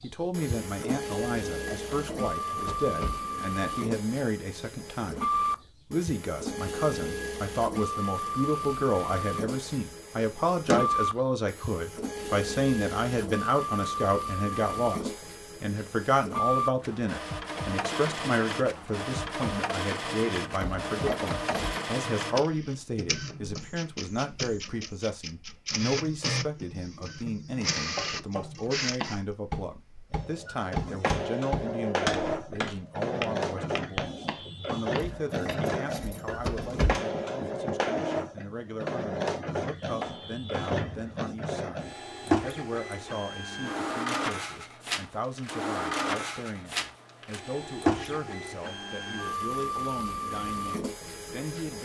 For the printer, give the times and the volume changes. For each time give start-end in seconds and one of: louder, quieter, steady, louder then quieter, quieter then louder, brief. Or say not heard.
0.0-51.8 steady.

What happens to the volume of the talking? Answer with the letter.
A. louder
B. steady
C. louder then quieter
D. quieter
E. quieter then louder
D.